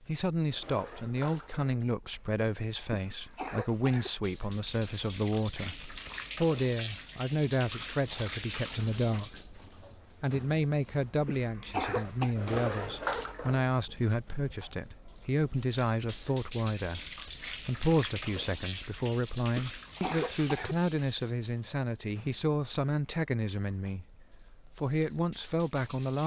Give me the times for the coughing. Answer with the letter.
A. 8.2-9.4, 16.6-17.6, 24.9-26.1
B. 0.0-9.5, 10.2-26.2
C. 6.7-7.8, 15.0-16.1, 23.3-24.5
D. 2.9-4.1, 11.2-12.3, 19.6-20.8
D.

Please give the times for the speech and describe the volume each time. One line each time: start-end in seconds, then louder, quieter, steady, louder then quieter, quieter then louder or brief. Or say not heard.
0.0-9.5 steady
10.2-26.2 steady.